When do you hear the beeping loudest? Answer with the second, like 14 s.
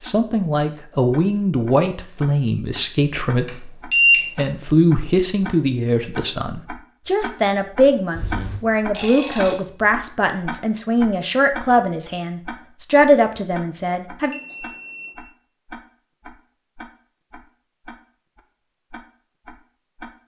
4 s.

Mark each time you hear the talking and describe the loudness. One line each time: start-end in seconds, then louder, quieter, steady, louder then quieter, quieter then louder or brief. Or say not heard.
0.0-14.3 steady.